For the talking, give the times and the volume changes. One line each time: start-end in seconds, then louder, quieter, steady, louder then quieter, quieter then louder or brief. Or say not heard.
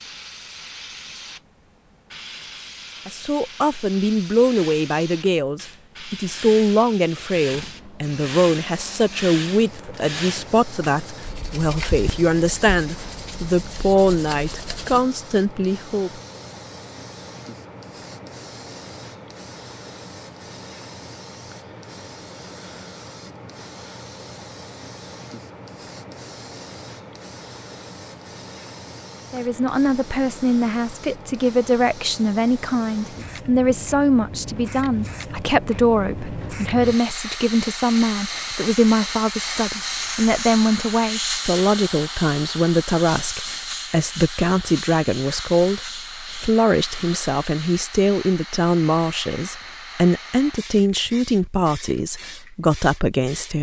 3.0-16.2 steady
29.3-53.5 steady.